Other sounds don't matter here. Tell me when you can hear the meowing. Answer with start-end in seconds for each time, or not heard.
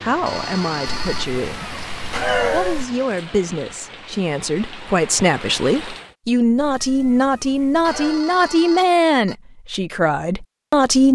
0.8-2.9, 6.5-8.2.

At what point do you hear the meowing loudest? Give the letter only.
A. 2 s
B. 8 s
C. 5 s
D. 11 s
A.